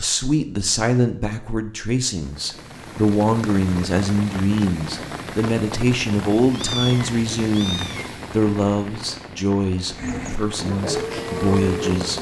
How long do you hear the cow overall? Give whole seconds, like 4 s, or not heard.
2 s.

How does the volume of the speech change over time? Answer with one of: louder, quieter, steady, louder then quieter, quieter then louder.
steady.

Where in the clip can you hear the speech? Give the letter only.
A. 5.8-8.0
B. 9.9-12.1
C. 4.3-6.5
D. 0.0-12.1
D.